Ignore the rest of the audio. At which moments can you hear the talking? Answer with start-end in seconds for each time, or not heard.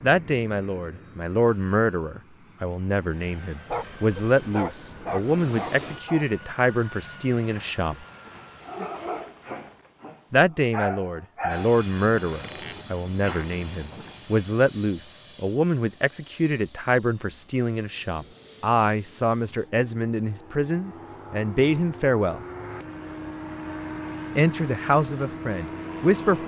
0.0-8.1, 10.3-22.4, 24.4-26.4.